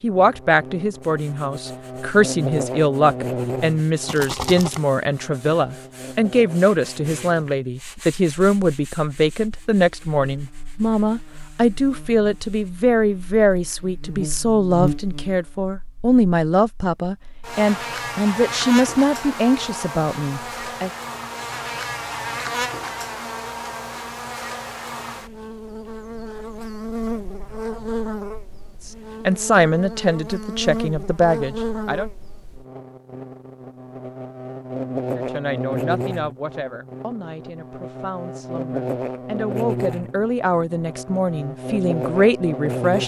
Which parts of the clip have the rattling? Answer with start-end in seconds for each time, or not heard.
4.0-4.8.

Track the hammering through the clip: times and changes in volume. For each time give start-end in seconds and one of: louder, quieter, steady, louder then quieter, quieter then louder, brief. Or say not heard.
not heard.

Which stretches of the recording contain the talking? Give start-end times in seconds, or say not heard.
0.0-20.9, 28.9-32.1, 35.1-43.0.